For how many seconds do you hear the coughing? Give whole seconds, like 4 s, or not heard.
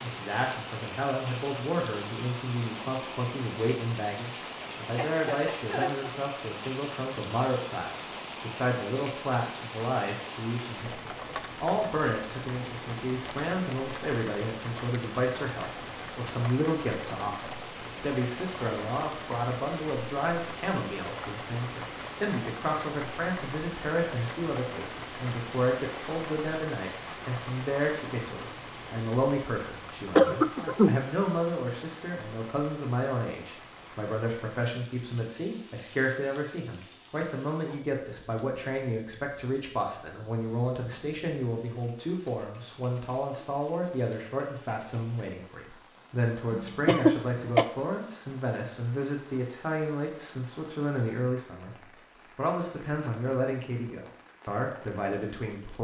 3 s.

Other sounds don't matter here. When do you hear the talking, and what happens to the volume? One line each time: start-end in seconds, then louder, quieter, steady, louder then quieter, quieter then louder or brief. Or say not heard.
0.0-55.7 steady.